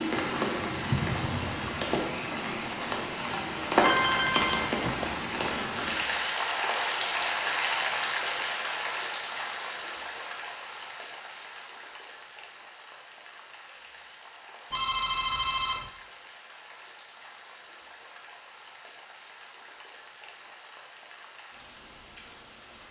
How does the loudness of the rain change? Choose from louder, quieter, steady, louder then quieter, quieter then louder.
quieter.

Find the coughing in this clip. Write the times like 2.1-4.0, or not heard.
not heard.